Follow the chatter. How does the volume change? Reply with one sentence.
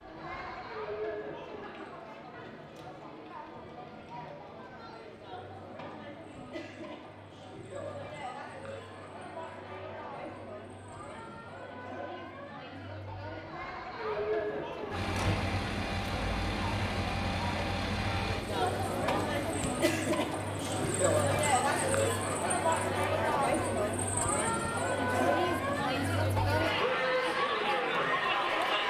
The volume of the chatter goes up.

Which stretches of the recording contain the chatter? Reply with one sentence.
The chatter can be heard from 0.0 to 28.8 s.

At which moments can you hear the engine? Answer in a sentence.
You can hear the engine from 14.9 to 22.1 s.